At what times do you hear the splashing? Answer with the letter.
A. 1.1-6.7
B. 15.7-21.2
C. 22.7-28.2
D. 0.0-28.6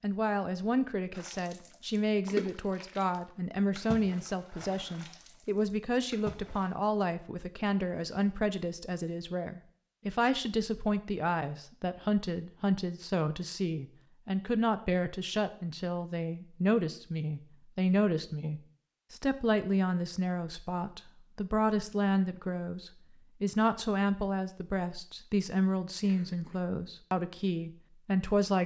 A.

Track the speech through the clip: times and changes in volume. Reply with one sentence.
The speech can be heard from 0.0 to 28.6 s, at a steady volume.